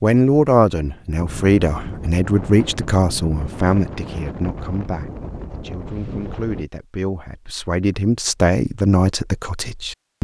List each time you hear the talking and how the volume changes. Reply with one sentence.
The talking can be heard from 0.0 to 10.2 s, getting quieter then louder.